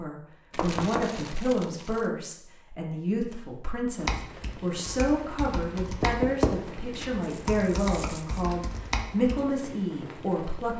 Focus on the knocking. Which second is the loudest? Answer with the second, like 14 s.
6 s.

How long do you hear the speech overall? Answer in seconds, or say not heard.
11 s.